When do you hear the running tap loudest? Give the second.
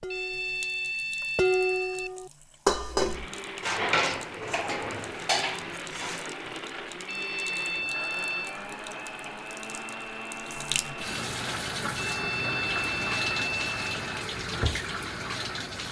13 s.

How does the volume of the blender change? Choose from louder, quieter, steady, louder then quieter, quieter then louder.
steady.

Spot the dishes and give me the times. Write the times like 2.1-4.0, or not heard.
0.0-6.2.